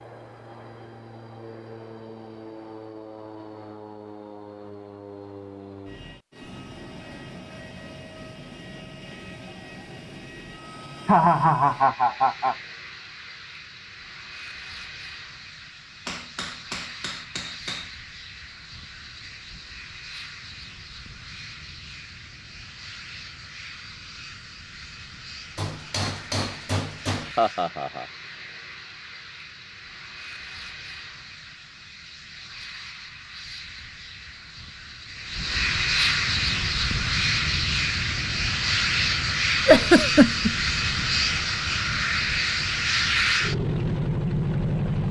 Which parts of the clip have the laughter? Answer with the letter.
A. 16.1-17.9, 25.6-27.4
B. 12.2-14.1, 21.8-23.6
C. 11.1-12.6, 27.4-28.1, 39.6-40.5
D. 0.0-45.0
C.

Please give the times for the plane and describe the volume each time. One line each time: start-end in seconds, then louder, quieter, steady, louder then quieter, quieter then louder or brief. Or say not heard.
0.0-45.0 louder.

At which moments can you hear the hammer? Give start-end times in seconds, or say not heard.
16.1-17.9, 25.6-27.4.